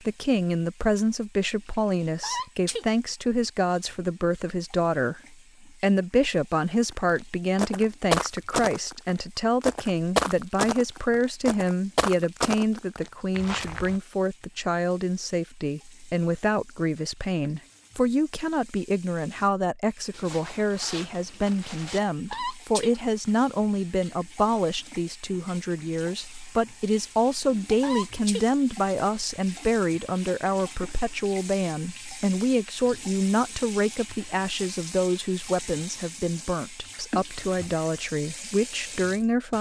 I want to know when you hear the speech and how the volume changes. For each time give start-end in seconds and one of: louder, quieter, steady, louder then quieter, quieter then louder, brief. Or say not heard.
0.1-39.5 steady.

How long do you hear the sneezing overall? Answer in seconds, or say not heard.
2 s.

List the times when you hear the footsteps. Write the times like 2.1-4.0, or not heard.
7.0-14.0.